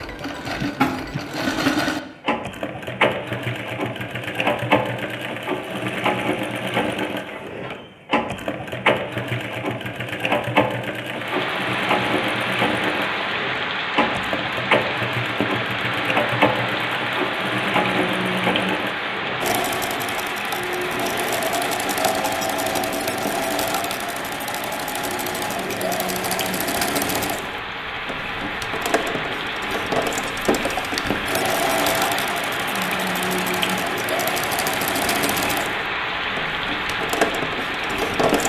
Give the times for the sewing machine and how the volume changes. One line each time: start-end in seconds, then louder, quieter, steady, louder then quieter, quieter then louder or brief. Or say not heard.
0.0-38.4 steady.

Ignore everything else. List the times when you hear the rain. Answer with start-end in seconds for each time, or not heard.
11.1-38.4.